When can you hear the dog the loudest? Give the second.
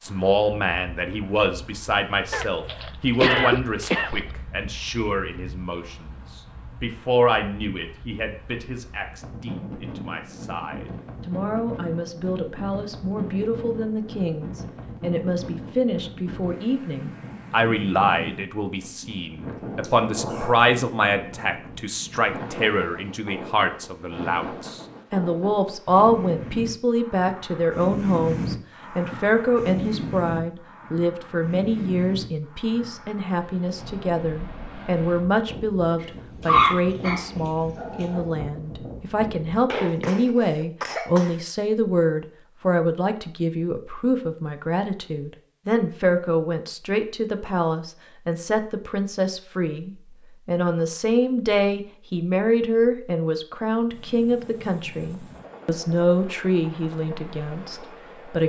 37 s.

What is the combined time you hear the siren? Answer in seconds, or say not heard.
not heard.